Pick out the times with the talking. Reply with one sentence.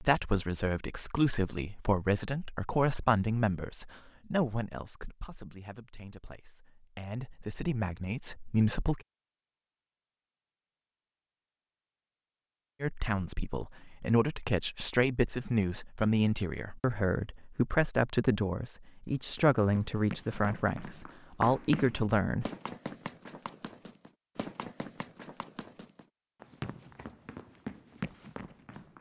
You can hear the talking from 0.0 to 9.0 s and from 12.8 to 22.4 s.